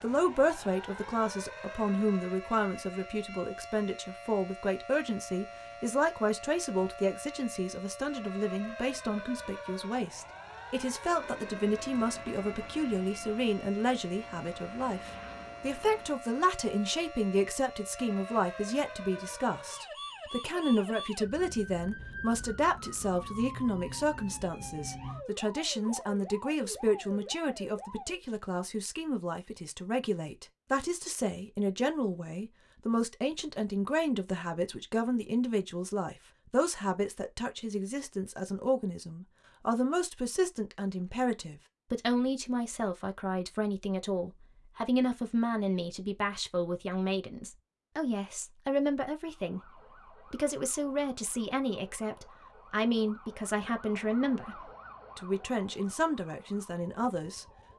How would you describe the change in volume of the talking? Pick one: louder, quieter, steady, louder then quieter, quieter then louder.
steady.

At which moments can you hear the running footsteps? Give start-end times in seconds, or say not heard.
not heard.